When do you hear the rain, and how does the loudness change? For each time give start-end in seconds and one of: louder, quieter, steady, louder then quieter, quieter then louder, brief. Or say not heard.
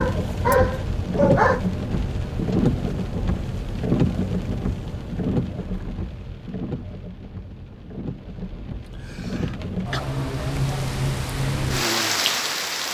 0.0-12.9 quieter then louder.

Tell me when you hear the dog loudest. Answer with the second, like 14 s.
1 s.